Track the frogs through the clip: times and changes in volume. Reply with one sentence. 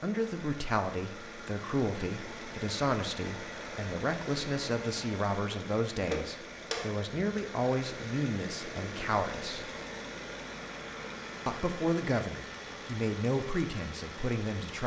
The frogs can't be heard in this clip.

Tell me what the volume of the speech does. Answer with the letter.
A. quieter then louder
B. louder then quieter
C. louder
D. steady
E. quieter
D.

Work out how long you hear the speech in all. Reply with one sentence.
You can hear the speech for 13 seconds altogether.